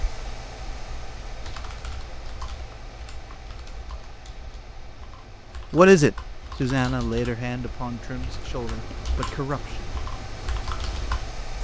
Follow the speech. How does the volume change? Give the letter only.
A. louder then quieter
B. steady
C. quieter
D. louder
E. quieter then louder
C.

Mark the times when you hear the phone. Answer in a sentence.
You can't hear the phone here.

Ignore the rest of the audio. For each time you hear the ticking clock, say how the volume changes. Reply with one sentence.
The ticking clock can't be heard in this clip.